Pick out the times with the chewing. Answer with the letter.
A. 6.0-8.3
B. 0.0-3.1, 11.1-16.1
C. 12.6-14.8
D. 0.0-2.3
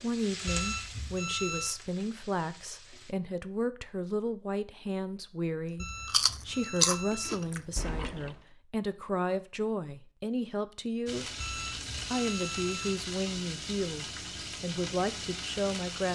A.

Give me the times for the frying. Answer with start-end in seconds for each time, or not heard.
0.0-3.1, 11.1-16.1.